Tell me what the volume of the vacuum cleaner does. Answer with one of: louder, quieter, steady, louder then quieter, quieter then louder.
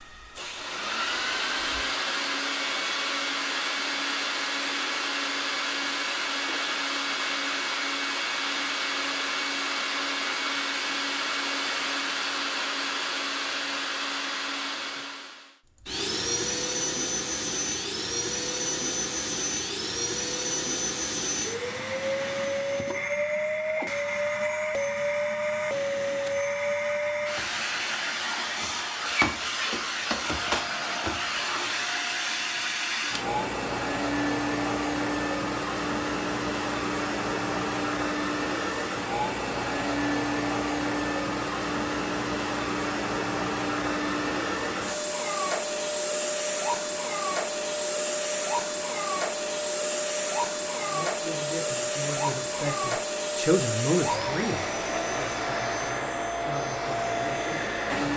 steady.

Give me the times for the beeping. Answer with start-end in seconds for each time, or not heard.
not heard.